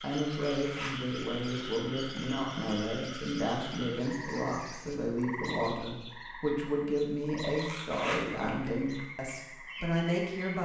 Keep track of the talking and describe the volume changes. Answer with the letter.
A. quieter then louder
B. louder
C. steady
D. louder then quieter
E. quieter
C.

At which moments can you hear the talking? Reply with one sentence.
You can hear the talking from 0.0 to 10.6 s.